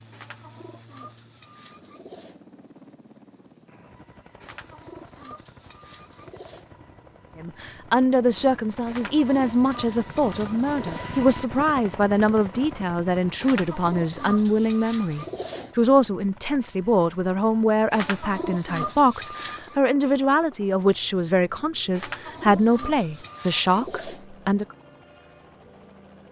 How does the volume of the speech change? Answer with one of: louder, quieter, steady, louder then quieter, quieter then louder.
steady.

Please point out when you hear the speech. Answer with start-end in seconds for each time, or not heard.
7.3-24.6.